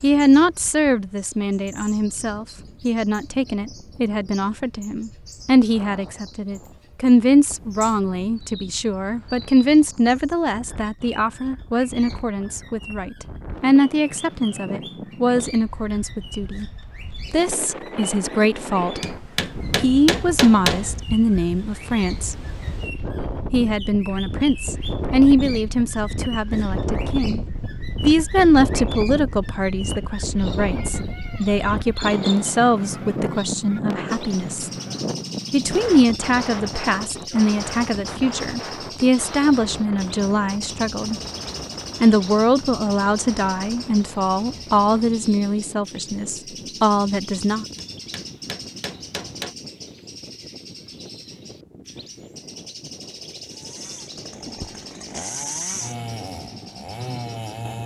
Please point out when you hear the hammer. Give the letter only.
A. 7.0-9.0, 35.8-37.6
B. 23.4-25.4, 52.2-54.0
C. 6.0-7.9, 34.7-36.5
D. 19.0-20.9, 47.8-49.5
D.